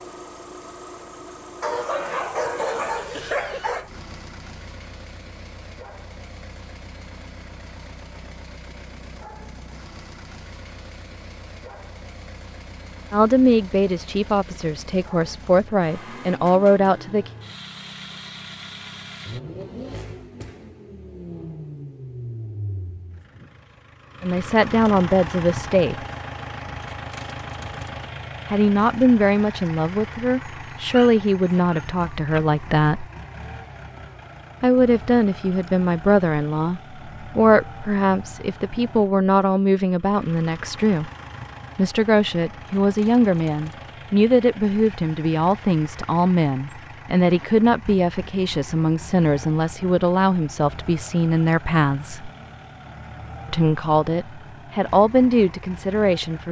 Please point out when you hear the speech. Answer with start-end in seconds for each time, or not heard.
13.1-17.3, 24.2-25.9, 28.5-33.0, 34.6-41.1, 41.8-52.3, 53.5-56.4.